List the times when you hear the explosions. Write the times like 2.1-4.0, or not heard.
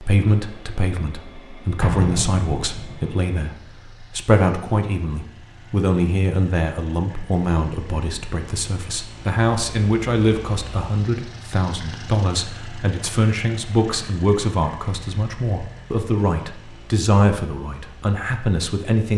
1.8-3.0.